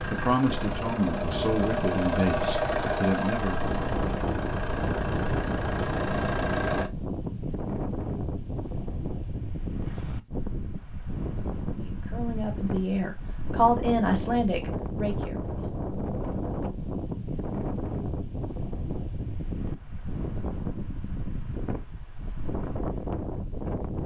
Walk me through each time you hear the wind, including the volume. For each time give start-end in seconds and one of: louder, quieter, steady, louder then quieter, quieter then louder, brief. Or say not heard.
0.0-24.0 steady.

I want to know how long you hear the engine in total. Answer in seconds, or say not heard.
7 s.